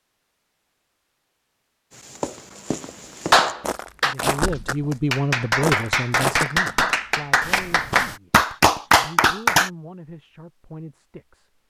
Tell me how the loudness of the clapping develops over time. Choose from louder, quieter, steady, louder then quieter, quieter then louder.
louder.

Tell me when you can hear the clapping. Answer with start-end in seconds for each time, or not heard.
3.3-9.7.